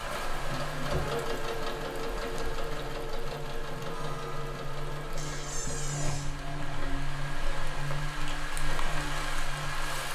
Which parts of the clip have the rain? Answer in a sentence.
The rain can be heard from 0.0 to 10.1 s.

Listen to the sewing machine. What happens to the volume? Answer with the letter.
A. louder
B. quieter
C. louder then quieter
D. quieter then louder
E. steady
B.